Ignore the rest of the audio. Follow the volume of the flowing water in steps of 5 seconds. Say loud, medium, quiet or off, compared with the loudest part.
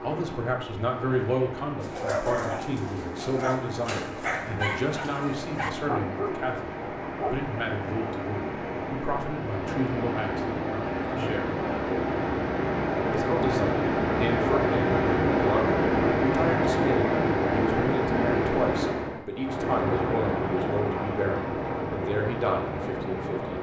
quiet, medium, loud, loud, medium.